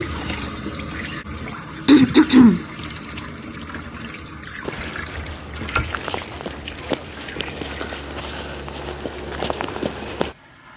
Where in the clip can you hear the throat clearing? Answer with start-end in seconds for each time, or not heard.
1.9-2.6, 6.0-7.9.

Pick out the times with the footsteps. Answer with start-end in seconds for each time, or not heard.
4.6-10.3.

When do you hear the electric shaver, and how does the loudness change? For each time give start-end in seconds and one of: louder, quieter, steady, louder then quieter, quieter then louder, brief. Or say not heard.
not heard.